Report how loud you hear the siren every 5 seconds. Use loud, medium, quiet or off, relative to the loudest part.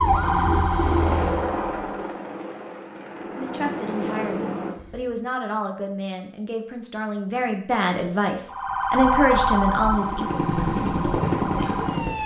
loud, loud, medium.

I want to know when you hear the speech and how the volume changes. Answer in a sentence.
You can hear the speech from 3.3 to 10.4 s, getting louder.